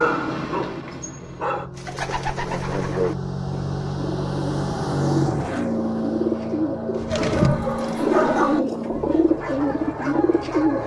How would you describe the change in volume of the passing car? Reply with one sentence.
The loudness of the passing car goes up, then down.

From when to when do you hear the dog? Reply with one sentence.
You can hear the dog from 0.0 to 1.6 s and from 7.0 to 10.8 s.